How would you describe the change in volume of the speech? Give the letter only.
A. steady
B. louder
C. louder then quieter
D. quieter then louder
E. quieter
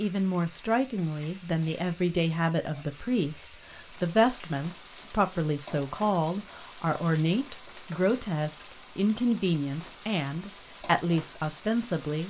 A.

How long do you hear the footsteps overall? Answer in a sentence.
The footsteps can't be heard in this clip.